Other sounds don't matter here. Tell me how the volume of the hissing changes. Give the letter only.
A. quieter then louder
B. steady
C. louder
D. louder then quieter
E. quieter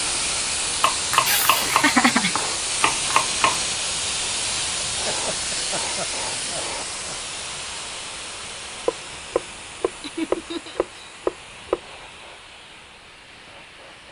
E.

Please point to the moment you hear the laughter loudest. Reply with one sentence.
The loudest moment of the laughter is at 2 seconds.